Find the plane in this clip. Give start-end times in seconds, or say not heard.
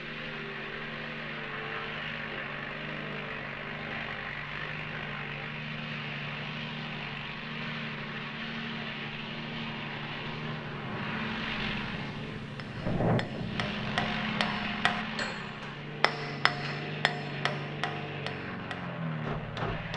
0.0-19.9.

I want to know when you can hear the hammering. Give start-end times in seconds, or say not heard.
12.6-19.9.